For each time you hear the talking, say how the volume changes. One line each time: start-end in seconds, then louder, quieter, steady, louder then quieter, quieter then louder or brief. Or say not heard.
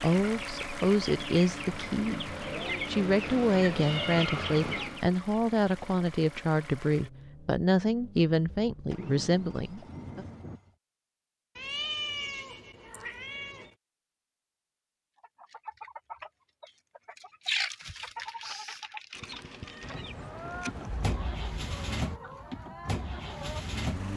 0.0-10.2 steady.